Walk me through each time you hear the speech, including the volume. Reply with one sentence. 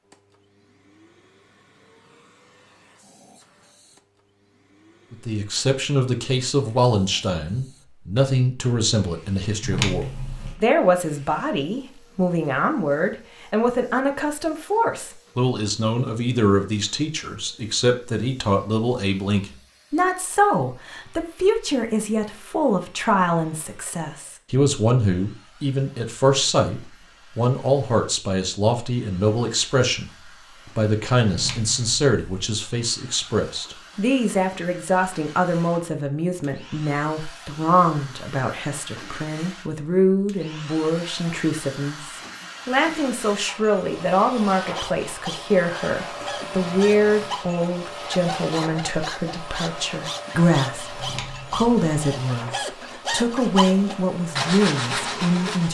The speech can be heard from 5.1 to 55.7 s, at a steady volume.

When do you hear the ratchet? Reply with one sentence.
The ratchet can't be heard in this clip.